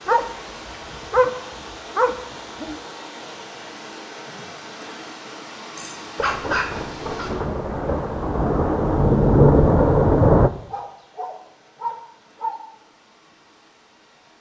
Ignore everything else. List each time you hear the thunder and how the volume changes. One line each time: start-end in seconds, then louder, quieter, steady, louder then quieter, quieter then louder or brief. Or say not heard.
6.2-10.5 louder.